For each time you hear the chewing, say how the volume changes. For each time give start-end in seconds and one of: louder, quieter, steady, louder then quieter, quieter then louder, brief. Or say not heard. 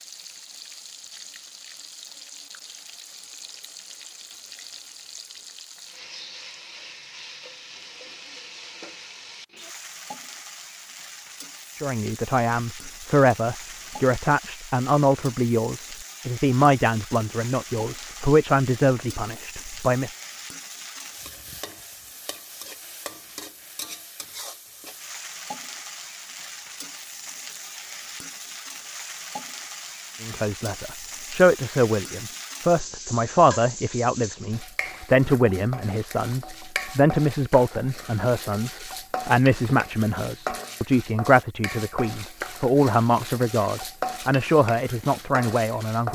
not heard.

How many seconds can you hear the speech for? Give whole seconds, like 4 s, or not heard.
24 s.